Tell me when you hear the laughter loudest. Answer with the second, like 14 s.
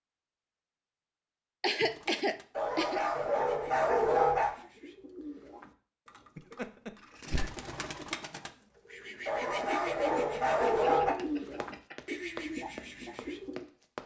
2 s.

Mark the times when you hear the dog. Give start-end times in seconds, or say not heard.
2.5-4.5, 9.2-11.2.